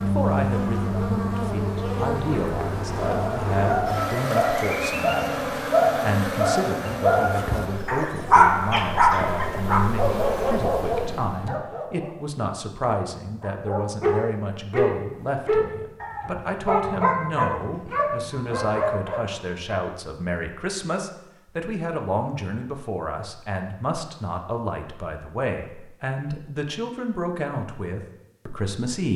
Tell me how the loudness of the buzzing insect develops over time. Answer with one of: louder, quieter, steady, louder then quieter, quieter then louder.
quieter.